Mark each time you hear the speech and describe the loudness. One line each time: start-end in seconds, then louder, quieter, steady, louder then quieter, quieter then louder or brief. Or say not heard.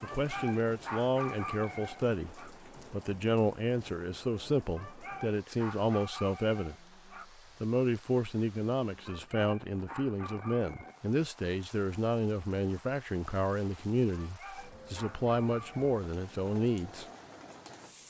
0.0-6.8 steady
7.6-17.1 steady.